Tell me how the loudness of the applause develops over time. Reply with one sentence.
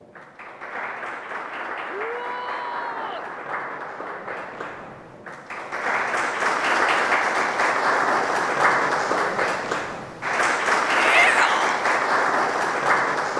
The loudness of the applause goes up.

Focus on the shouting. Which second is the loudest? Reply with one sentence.
The volume of the shouting peaks at 11 seconds.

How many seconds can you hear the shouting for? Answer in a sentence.
The shouting can be heard for 2 seconds in total.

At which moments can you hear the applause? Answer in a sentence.
You can hear the applause from 0.0 to 13.3 s.